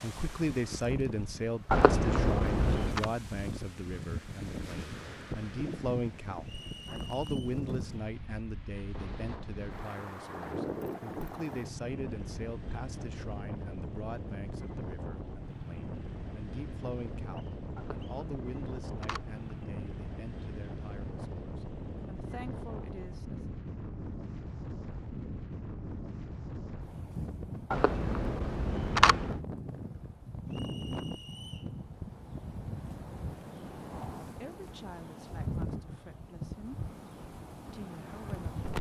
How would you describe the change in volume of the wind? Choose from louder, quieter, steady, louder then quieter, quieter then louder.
steady.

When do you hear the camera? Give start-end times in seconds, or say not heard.
1.7-3.0, 17.8-19.4, 27.7-29.4.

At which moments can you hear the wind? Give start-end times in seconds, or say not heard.
0.0-38.7.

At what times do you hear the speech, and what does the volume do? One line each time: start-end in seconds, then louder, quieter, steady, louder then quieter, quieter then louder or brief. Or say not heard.
0.0-23.5 quieter
34.2-36.9 brief
37.7-38.7 brief.